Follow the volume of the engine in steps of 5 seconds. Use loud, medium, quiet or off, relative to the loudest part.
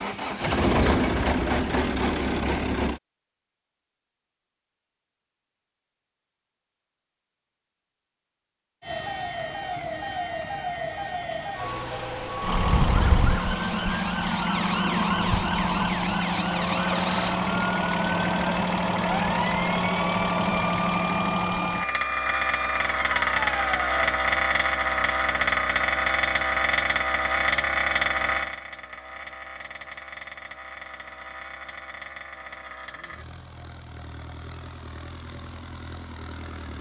loud, off, loud, loud, loud, loud, quiet, quiet.